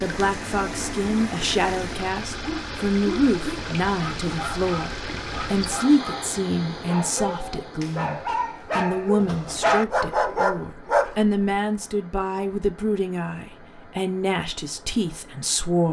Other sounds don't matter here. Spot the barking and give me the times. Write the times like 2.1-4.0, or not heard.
2.4-11.3.